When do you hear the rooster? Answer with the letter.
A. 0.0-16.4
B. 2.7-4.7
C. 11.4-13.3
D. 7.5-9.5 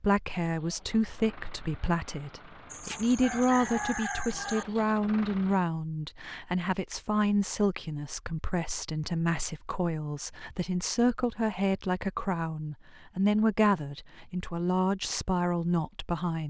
B.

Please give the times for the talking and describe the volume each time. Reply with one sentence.
You can hear the talking from 0.0 to 16.4 s, at a steady volume.